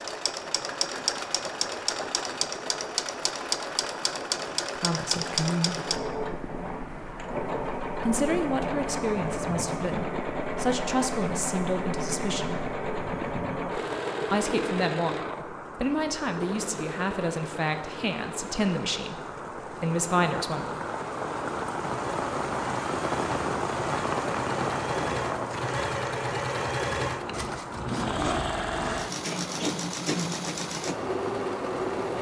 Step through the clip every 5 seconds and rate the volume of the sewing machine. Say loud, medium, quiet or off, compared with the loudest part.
loud, loud, loud, medium, medium, loud, loud.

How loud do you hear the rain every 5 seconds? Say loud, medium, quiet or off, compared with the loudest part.
medium, medium, medium, medium, loud, medium, medium.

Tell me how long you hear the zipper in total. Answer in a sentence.
You can hear the zipper for 2 seconds altogether.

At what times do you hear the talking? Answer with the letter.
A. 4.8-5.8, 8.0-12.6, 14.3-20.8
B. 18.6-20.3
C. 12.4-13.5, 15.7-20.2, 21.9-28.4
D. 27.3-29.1
A.